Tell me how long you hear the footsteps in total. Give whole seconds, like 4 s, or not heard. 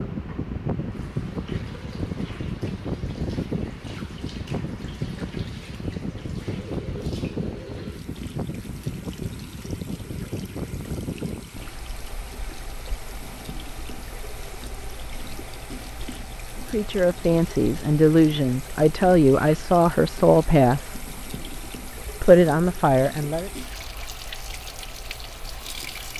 not heard.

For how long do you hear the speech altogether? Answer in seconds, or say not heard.
6 s.